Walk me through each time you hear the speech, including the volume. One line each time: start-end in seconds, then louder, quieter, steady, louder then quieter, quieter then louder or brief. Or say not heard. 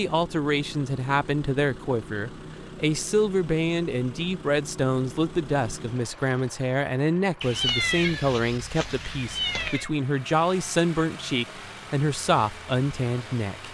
0.0-13.6 steady.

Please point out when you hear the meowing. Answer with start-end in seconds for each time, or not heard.
7.4-9.9.